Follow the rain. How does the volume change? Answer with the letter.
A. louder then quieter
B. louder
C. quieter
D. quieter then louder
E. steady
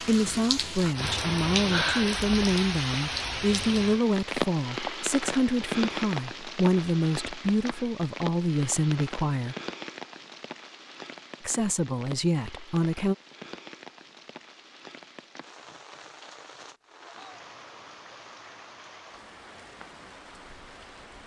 C.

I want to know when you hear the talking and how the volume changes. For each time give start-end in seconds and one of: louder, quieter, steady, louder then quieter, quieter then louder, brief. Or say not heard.
0.0-9.6 steady
11.4-13.2 brief.